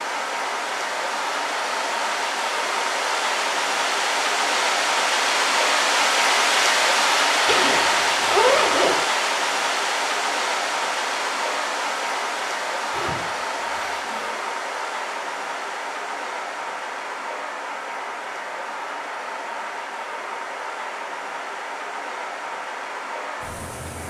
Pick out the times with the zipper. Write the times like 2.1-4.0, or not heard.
7.5-9.1, 12.9-14.3.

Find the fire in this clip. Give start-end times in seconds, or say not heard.
not heard.